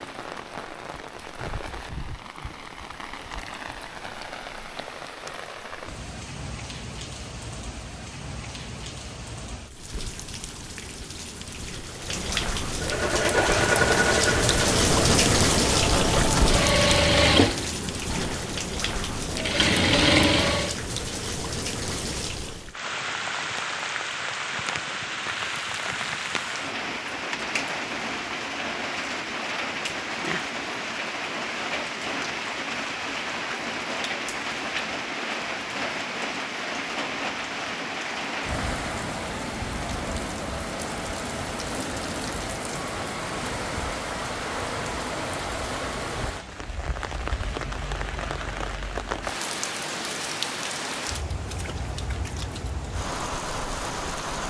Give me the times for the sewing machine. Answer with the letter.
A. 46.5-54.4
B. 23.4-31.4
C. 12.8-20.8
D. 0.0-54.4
C.